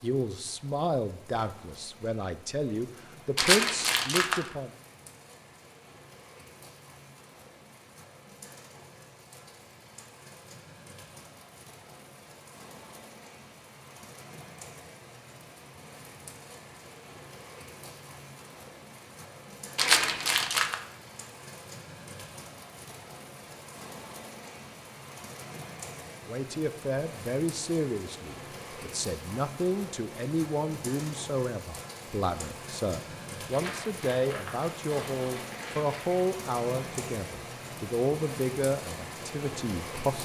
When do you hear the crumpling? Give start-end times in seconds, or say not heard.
3.4-4.4, 19.8-20.8, 33.5-36.2.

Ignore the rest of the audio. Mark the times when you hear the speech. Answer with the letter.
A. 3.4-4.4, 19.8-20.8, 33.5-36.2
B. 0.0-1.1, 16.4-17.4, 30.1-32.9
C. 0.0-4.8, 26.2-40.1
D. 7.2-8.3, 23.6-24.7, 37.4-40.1
C.